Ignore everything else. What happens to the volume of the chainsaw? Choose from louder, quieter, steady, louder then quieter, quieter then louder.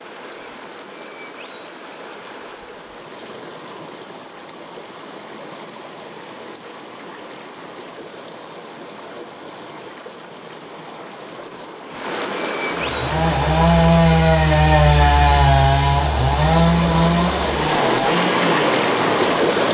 quieter.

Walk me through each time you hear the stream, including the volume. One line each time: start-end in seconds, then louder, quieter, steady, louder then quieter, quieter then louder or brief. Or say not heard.
0.0-19.6 louder.